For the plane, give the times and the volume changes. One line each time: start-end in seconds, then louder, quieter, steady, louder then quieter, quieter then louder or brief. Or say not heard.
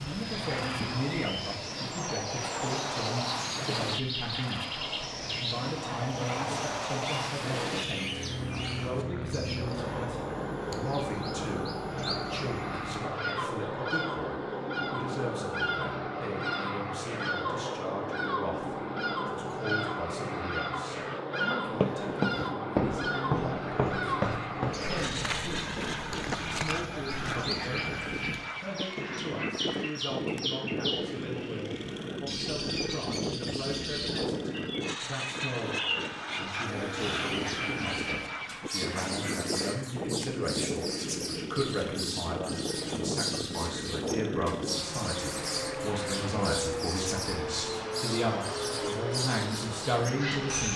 0.0-50.7 steady.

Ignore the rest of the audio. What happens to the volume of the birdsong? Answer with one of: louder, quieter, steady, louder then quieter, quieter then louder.
steady.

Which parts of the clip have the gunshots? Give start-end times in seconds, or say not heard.
not heard.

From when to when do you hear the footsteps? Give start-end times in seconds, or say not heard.
21.8-27.6.